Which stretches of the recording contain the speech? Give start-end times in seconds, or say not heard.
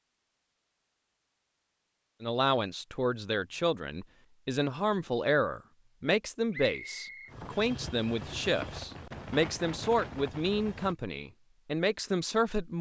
2.2-12.7.